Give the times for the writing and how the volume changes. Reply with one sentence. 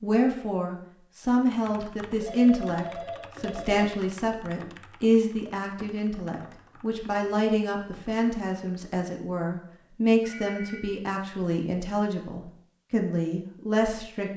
You can't hear the writing here.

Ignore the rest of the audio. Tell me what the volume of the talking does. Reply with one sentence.
The volume of the talking stays about the same.